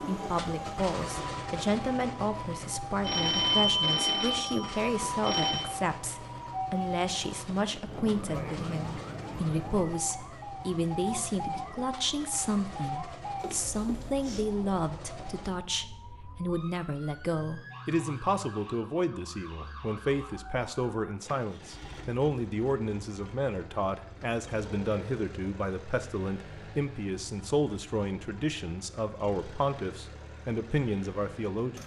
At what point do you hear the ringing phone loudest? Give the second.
4 s.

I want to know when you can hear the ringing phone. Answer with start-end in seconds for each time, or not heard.
3.0-5.7, 13.4-14.4, 24.6-25.0.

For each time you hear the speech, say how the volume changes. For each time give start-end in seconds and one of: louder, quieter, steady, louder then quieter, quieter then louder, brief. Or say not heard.
0.0-31.8 steady.